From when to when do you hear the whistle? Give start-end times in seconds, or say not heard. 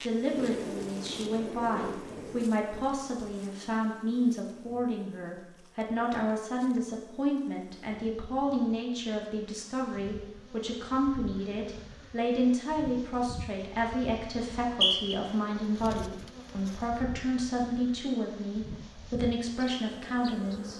14.5-15.2.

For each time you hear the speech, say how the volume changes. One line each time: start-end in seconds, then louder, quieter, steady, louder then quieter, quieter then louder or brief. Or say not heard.
0.0-20.7 steady.